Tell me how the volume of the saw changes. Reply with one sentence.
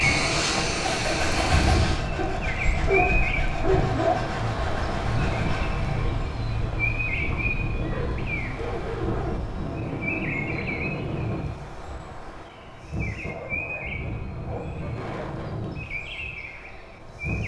The loudness of the saw goes down.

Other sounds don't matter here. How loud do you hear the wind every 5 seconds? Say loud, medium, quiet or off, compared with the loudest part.
loud, loud, medium, medium.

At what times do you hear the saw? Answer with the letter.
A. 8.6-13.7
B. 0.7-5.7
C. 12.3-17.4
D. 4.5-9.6
B.